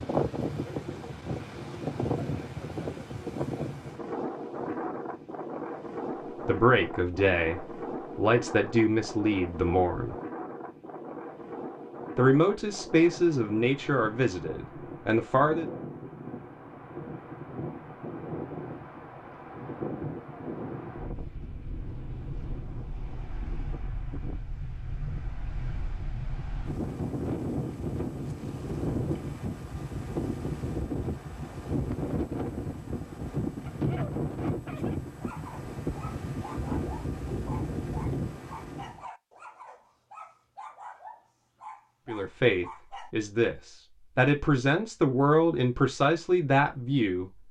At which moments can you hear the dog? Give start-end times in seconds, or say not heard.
33.6-43.1.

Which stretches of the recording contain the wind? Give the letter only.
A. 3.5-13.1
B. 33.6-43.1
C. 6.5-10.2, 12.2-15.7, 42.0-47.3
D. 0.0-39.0
D.